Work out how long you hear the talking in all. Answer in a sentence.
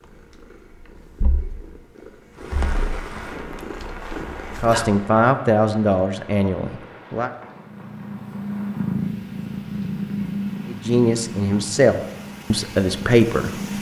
You can hear the talking for 6 seconds altogether.